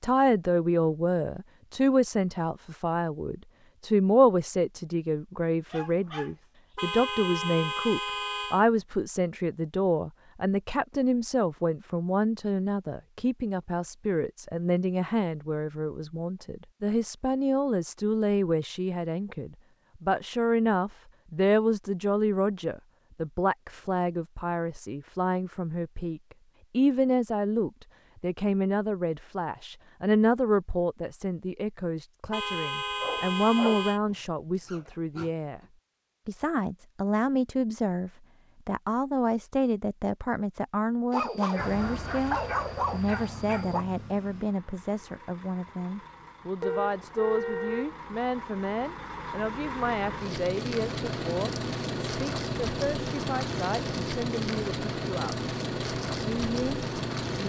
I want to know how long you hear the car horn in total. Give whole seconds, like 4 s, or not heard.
5 s.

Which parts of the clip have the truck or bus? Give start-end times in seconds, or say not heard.
41.5-57.4.